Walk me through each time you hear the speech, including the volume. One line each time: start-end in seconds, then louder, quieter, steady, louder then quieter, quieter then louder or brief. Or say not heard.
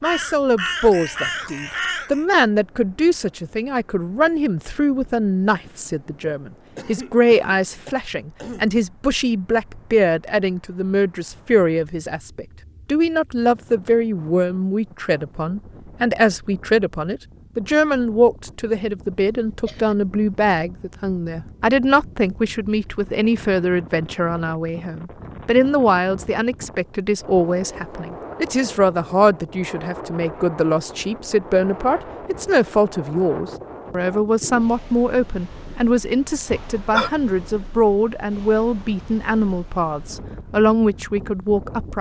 0.0-41.9 steady.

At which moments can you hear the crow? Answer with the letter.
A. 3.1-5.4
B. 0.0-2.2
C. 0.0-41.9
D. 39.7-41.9
B.